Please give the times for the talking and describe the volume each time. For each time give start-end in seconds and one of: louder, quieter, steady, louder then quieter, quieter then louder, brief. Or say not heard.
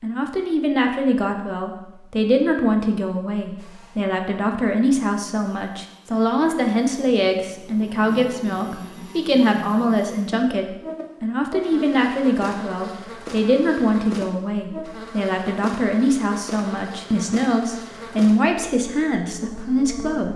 0.0-20.3 steady.